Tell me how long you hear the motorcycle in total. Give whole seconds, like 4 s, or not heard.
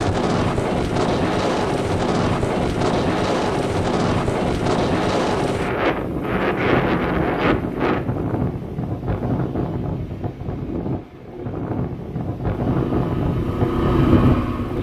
2 s.